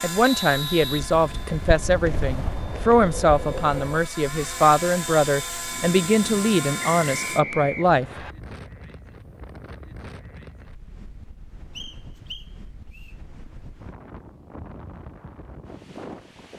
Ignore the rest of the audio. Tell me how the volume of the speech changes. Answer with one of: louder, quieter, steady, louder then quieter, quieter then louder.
steady.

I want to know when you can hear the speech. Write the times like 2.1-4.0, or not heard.
0.0-8.1.